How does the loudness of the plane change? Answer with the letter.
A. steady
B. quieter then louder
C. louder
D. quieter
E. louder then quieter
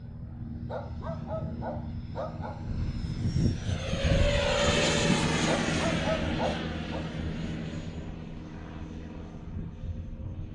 E.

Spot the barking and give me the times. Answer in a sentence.
You can hear the barking from 0.7 to 2.6 s and from 5.5 to 7.0 s.